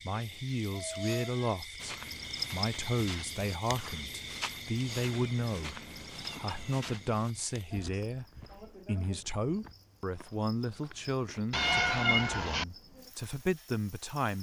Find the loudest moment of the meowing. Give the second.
12 s.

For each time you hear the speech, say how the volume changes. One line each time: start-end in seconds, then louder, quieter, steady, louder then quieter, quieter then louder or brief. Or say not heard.
0.0-14.3 steady.